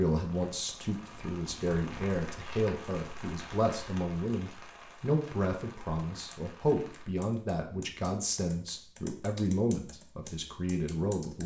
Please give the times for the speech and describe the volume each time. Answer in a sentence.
The speech can be heard from 0.0 to 11.4 s, at a steady volume.